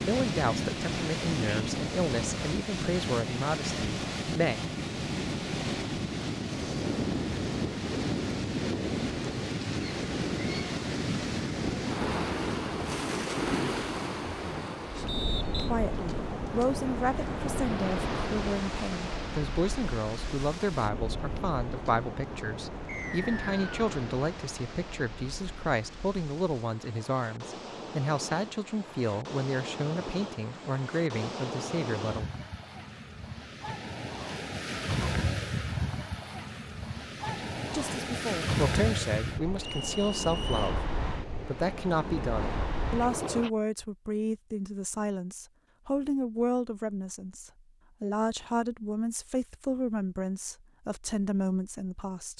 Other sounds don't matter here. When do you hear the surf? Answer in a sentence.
You can hear the surf from 0.0 to 43.5 s.